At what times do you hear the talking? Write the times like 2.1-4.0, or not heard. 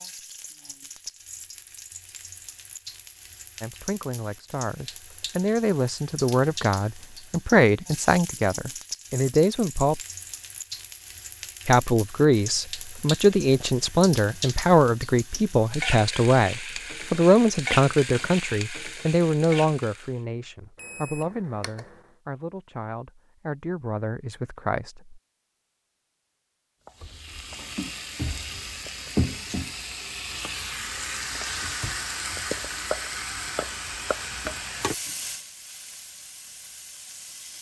3.6-10.0, 11.7-25.2.